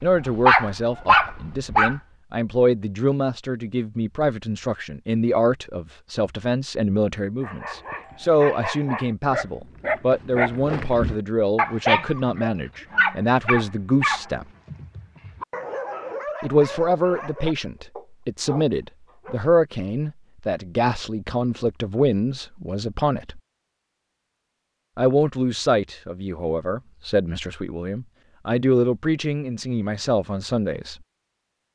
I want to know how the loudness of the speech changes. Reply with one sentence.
The volume of the speech stays about the same.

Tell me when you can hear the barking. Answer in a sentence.
The barking can be heard from 0.0 to 1.9 s and from 7.4 to 19.4 s.